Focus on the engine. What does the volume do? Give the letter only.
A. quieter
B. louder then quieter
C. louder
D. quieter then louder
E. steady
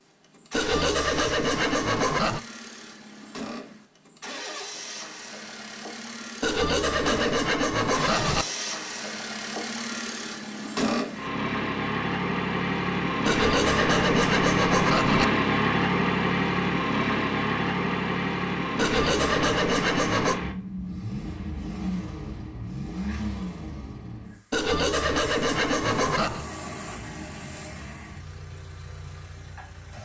B.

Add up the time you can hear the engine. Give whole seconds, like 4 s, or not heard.
30 s.